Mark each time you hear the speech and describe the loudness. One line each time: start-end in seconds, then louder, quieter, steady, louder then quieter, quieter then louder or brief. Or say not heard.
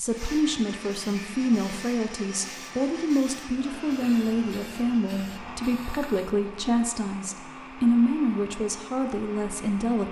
0.0-10.0 steady.